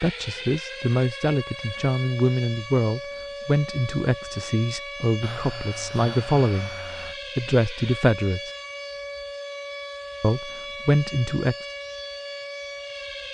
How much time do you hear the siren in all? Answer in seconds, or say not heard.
13 s.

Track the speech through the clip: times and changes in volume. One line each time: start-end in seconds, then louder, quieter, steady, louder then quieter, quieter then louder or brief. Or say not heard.
0.0-6.8 steady
7.3-8.5 brief
10.2-11.6 brief.